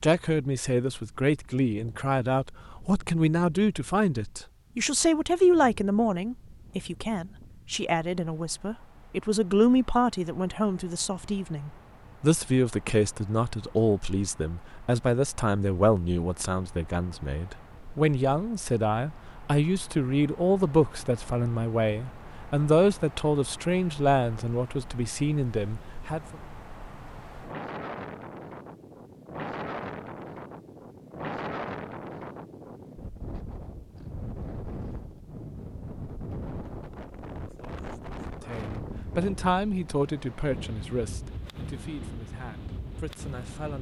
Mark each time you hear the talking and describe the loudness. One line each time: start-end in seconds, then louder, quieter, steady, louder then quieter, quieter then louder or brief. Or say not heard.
0.0-26.4 steady
38.5-43.7 quieter.